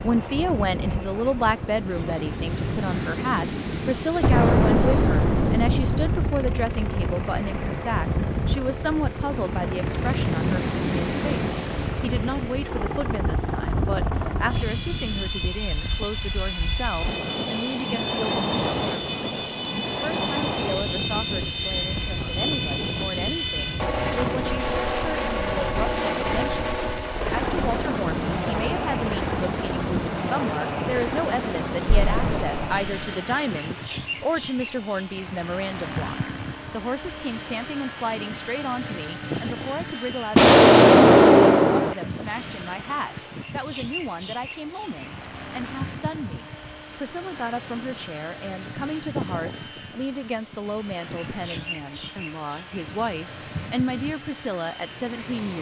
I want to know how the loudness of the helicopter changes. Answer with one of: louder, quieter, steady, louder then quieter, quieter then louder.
louder then quieter.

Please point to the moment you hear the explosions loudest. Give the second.
41 s.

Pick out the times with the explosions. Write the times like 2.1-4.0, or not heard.
4.2-6.2, 31.9-32.7, 40.4-42.0.